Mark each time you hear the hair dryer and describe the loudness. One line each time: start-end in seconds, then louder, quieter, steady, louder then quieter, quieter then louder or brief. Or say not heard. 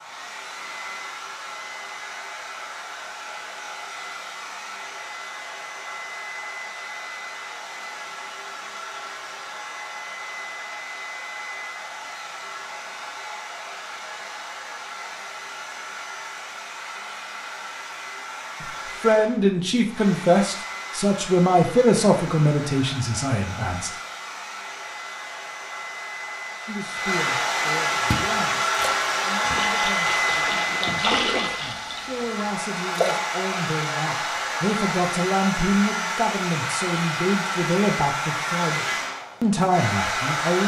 0.0-40.6 louder.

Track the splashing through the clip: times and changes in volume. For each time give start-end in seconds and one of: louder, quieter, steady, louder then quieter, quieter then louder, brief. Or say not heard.
28.0-33.1 louder then quieter.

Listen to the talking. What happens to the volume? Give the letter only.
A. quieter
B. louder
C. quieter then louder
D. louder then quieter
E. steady
C.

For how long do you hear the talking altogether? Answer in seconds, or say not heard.
19 s.